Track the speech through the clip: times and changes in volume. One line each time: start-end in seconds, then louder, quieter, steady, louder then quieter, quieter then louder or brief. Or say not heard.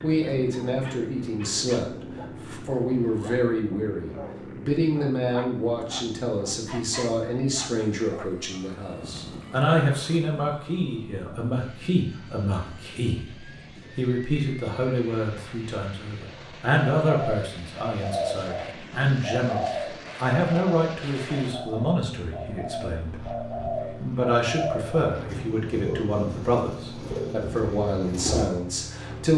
0.0-29.3 steady.